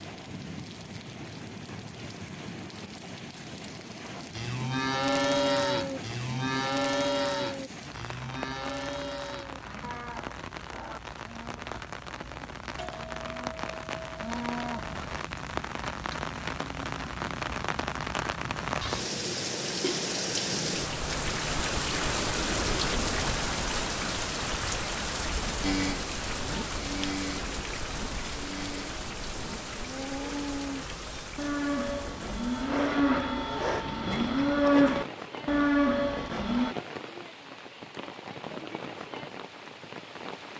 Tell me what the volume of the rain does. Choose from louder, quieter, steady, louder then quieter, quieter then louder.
louder then quieter.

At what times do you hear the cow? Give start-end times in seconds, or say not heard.
4.3-15.2, 25.6-36.8.